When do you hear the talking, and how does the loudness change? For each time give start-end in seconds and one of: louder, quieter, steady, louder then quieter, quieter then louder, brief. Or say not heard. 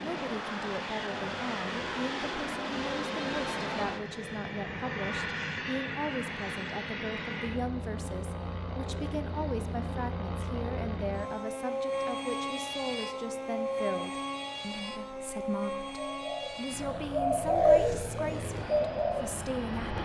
0.0-20.0 steady.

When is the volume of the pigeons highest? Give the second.
18 s.